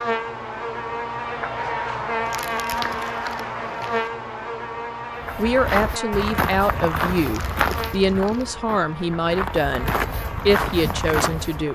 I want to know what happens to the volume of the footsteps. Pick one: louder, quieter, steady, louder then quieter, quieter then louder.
quieter then louder.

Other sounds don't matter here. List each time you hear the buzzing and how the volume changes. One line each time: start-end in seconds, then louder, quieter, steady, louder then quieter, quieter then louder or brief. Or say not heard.
0.0-11.7 quieter.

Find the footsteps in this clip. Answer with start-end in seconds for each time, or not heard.
5.2-11.7.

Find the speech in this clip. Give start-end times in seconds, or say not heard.
5.3-11.7.